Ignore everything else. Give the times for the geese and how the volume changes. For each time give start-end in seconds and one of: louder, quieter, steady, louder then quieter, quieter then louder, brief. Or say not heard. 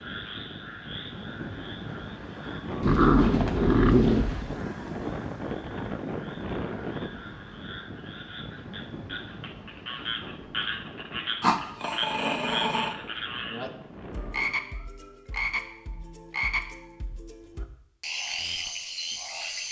not heard.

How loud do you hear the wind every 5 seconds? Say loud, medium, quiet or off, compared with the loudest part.
loud, loud, medium, off.